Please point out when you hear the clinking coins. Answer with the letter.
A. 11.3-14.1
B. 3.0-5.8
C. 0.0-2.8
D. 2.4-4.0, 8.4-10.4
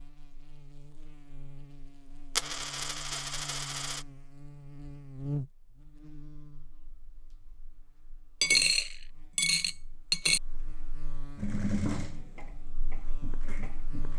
D.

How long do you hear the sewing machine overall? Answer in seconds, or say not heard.
3 s.